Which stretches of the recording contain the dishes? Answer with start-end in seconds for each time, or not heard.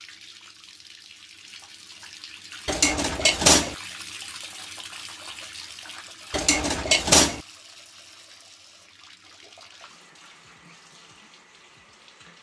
2.6-3.8, 6.3-7.4.